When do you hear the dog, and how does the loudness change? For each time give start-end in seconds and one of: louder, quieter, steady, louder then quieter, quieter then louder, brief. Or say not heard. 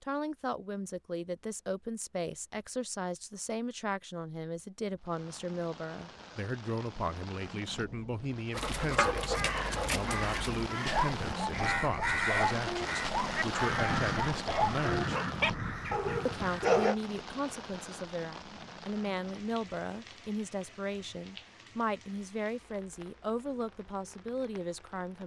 8.5-16.9 steady.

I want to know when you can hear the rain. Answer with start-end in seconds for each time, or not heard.
5.0-25.2.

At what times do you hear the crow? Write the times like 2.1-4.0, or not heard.
9.2-16.9.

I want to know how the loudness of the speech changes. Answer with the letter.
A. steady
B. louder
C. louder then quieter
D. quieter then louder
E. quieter
A.